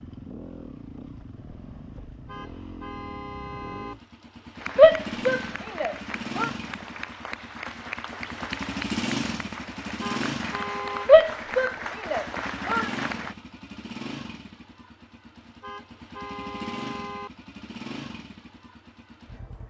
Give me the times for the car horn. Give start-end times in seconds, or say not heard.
2.2-4.0, 10.0-11.1, 15.6-17.3.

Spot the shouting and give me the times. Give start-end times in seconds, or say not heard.
4.8-6.5, 11.1-12.9.